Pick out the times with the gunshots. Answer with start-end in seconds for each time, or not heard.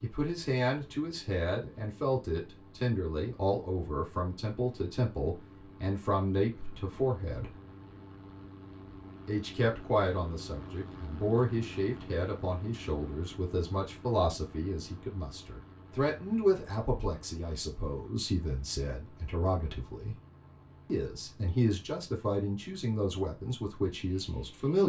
not heard.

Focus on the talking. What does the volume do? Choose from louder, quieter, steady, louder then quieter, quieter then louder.
steady.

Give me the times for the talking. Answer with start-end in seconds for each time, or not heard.
0.0-7.5, 9.2-20.1, 20.9-24.8.